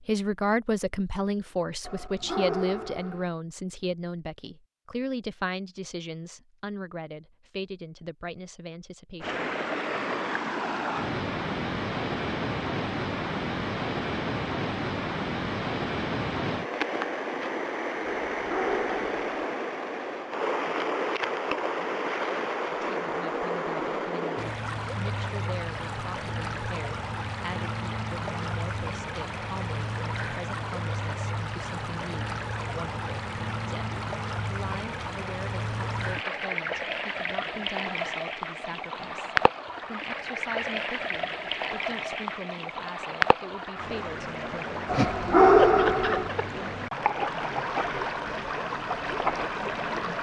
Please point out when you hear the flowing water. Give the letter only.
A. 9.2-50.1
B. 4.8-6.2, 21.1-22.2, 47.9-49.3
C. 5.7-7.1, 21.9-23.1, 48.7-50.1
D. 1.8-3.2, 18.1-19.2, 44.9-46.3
A.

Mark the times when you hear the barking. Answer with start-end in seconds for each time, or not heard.
1.8-3.2, 18.1-19.2, 44.9-46.3.